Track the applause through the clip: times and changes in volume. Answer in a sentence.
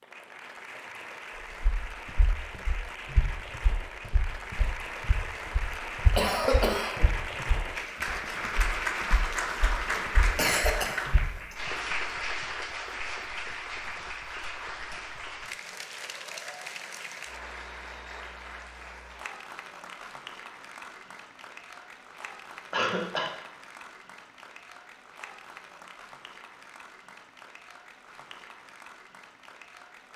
You can hear the applause from 0.0 to 30.1 s, getting louder then quieter.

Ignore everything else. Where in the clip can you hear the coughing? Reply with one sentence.
You can hear the coughing from 6.2 to 7.0 s, from 10.3 to 11.6 s and from 22.7 to 23.3 s.